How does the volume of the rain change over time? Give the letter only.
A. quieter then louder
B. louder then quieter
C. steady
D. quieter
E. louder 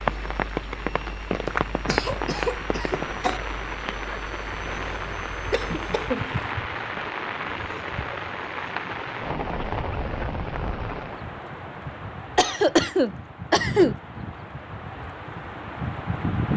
D.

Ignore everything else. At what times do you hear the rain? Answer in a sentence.
The rain can be heard from 0.0 to 16.5 s.